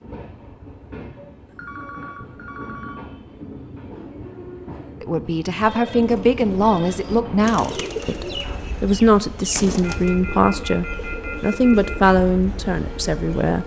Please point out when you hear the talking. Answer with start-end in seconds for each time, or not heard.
5.0-13.6.